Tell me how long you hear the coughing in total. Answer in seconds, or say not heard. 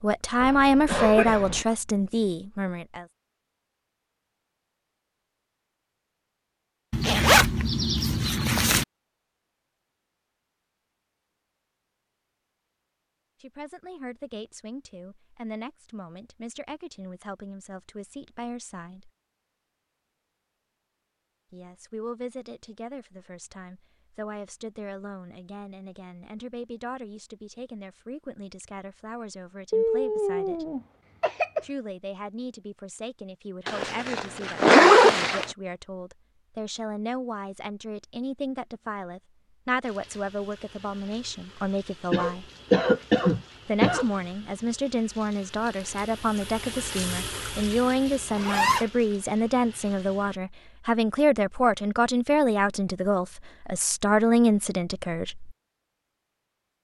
5 s.